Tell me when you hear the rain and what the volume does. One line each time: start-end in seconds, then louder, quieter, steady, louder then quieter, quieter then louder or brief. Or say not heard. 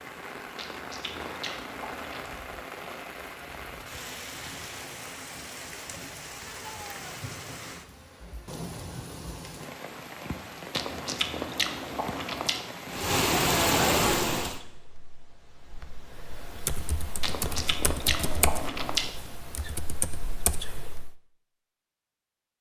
0.0-14.6 louder.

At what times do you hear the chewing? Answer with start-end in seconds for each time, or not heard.
0.6-2.2, 10.7-12.7, 17.2-19.1.